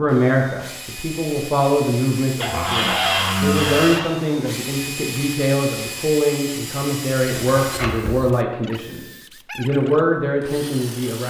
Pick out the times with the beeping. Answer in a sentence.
The beeping can't be heard in this clip.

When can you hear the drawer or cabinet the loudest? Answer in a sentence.
The volume of the drawer or cabinet peaks at 3 seconds.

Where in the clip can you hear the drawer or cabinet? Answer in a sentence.
You can hear the drawer or cabinet from 2.4 to 4.1 s and from 7.3 to 8.2 s.